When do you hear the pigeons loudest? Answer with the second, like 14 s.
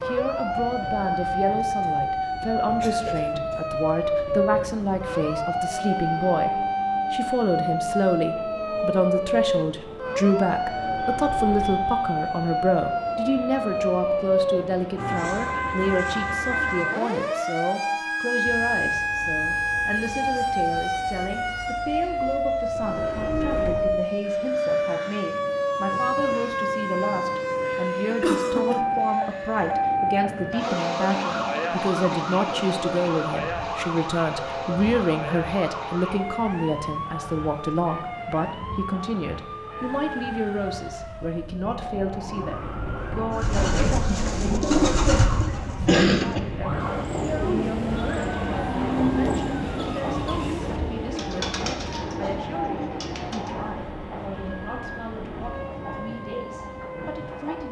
45 s.